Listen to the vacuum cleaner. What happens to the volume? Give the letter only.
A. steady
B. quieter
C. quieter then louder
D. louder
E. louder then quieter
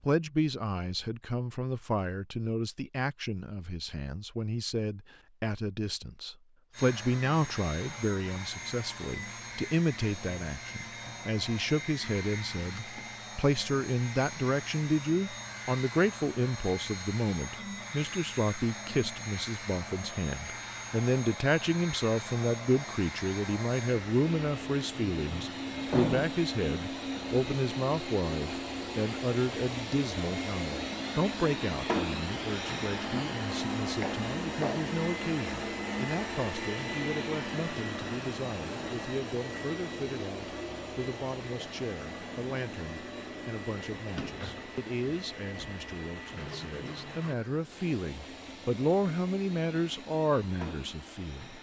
E.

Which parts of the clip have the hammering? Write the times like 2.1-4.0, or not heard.
not heard.